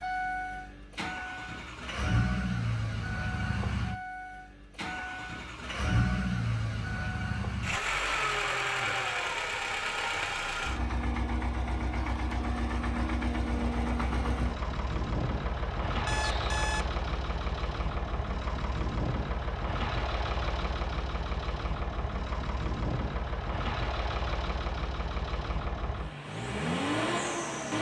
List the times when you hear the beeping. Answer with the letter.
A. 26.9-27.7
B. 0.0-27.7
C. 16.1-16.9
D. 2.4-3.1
C.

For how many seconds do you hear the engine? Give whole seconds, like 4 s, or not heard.
28 s.